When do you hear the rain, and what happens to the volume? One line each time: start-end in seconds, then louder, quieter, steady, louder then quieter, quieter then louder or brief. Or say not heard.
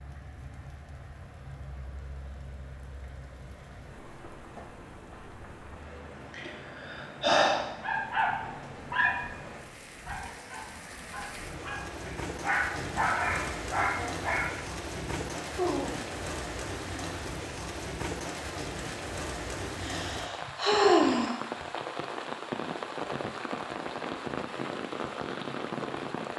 0.0-26.3 louder.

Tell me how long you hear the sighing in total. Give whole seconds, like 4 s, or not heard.
3 s.